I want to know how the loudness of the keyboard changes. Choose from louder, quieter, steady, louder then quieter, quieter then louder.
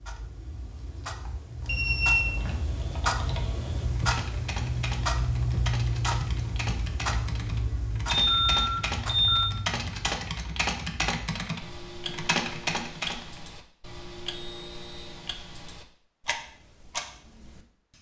louder.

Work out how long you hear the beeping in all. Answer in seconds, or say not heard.
3 s.